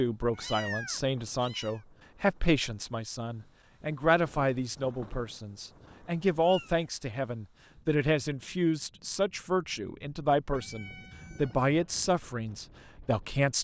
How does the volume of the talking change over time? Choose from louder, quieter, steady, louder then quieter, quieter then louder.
steady.